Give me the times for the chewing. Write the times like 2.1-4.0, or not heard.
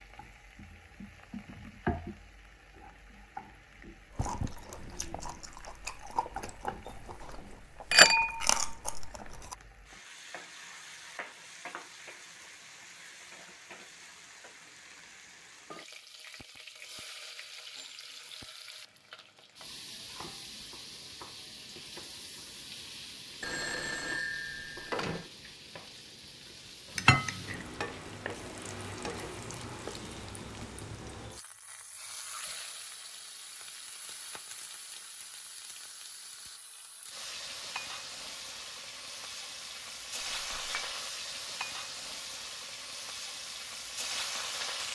4.2-9.6.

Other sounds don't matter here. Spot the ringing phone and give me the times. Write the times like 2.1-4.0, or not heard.
23.4-25.3.